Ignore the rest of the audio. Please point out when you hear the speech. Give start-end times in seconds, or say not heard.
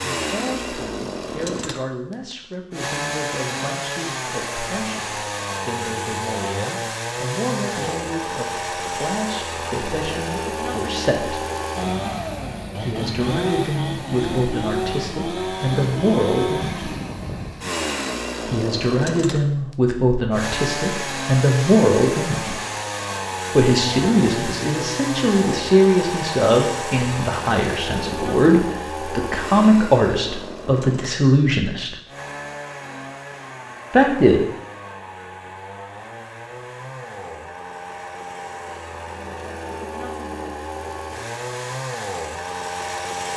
0.0-11.4, 12.8-16.9, 18.4-22.6, 23.6-31.9, 33.9-34.5.